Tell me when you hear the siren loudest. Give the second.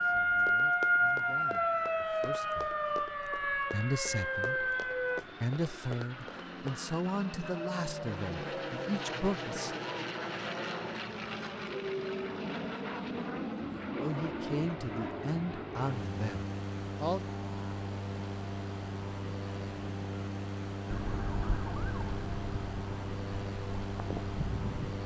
1 s.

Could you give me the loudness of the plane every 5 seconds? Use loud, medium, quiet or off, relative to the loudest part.
quiet, loud, loud, loud, loud.